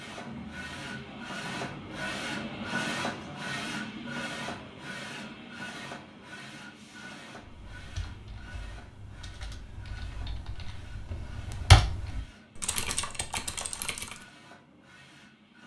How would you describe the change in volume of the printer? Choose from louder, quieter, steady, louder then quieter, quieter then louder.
quieter.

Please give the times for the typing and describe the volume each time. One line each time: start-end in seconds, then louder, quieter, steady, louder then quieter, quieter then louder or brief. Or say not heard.
7.3-14.2 louder then quieter.